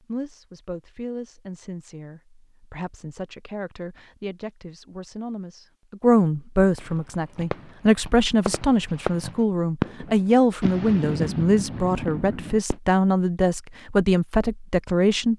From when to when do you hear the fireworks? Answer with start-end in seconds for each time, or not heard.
6.8-12.8.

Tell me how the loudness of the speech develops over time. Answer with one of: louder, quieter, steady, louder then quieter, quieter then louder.
louder.